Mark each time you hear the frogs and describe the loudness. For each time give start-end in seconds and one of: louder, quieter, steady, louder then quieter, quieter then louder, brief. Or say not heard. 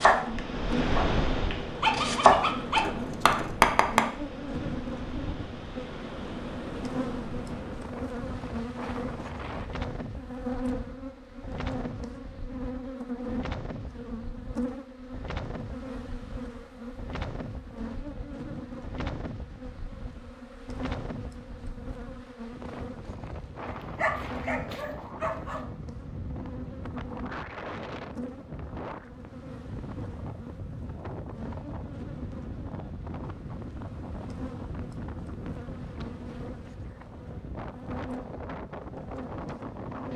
not heard.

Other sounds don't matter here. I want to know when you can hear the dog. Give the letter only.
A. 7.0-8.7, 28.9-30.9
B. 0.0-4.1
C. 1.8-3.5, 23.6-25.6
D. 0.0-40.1
C.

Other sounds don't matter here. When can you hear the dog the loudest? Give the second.
2 s.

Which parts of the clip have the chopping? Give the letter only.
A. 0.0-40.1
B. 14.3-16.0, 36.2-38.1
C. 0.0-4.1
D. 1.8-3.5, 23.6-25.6
C.